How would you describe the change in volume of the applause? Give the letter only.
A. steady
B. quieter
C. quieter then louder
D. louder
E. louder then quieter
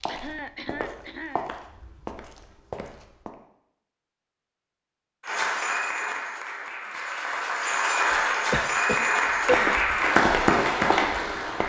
D.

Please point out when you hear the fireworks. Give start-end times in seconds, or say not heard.
not heard.